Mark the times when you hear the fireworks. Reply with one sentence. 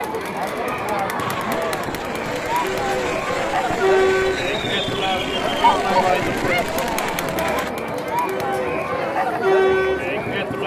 You can hear the fireworks from 1.1 to 7.7 s.